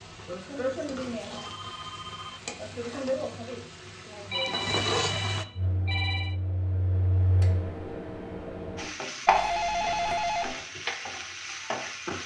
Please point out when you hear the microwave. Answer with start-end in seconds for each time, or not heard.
5.5-8.9.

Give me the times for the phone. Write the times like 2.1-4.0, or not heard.
1.4-2.5, 4.3-6.3, 9.2-10.6.